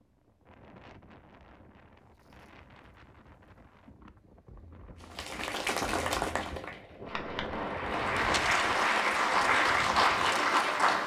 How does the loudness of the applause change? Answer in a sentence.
The volume of the applause goes down, then up.